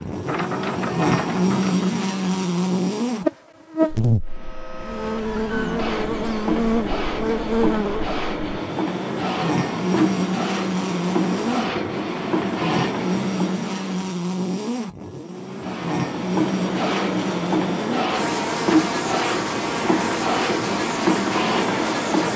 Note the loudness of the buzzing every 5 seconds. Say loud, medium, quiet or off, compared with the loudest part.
loud, loud, loud, medium, medium.